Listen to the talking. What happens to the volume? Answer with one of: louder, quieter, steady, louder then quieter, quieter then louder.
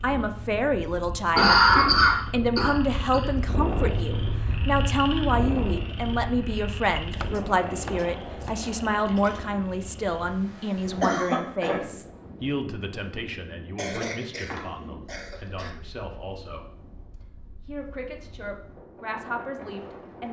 quieter.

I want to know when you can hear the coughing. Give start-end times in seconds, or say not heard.
1.4-3.2, 10.8-11.8, 13.8-15.7.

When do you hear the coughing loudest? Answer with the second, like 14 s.
2 s.